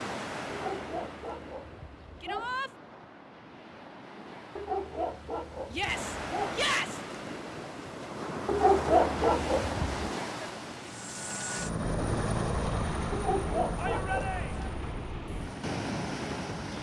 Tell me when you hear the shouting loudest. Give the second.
7 s.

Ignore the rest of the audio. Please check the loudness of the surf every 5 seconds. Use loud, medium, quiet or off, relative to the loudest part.
medium, loud, loud, loud.